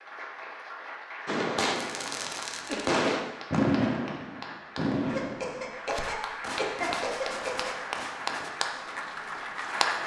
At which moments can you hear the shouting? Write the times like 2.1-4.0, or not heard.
not heard.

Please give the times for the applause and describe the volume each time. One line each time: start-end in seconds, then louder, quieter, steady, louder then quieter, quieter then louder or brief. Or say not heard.
0.0-10.0 louder.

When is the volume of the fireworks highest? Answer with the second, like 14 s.
4 s.